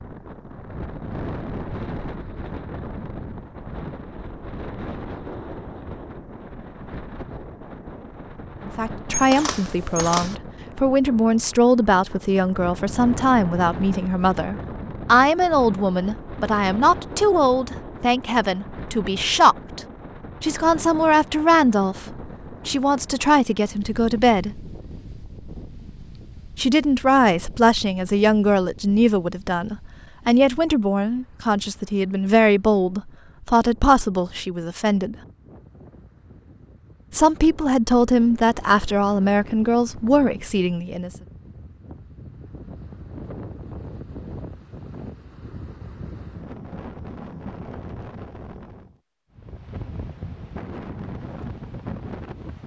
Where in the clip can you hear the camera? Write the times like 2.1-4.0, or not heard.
9.1-10.3.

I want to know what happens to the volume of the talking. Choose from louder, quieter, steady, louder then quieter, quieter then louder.
steady.